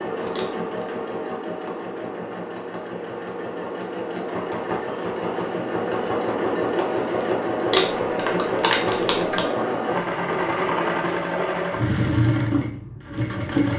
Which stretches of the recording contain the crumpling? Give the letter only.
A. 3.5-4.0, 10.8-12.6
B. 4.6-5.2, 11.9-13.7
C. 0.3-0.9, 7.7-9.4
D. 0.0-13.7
C.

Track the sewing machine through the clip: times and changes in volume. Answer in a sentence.
You can hear the sewing machine from 0.0 to 13.7 s, getting louder.